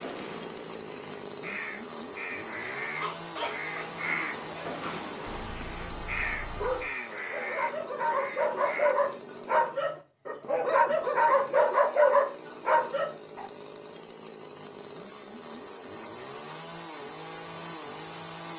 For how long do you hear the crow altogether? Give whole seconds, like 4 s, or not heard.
9 s.